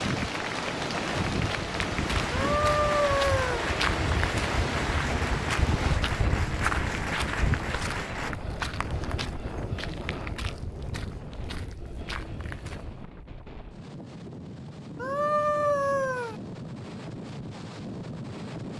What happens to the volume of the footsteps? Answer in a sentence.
The volume of the footsteps goes down.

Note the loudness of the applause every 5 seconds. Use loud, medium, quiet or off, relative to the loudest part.
loud, loud, off, off.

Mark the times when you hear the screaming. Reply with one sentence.
You can hear the screaming from 2.3 to 3.7 s and from 15.0 to 16.4 s.